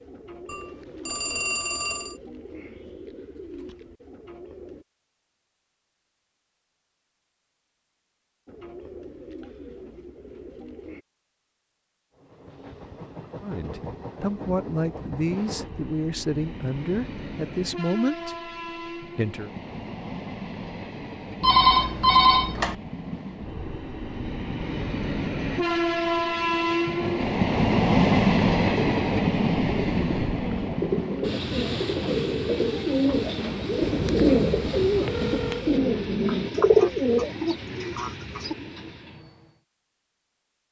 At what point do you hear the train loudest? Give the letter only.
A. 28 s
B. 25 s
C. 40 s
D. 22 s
A.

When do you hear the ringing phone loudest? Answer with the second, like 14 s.
22 s.